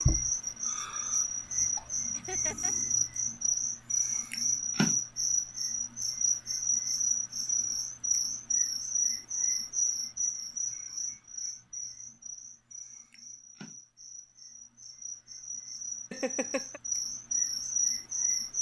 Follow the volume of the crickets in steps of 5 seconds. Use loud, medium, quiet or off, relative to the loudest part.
loud, loud, medium, loud.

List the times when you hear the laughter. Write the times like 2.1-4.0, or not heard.
2.1-2.8, 16.1-16.8.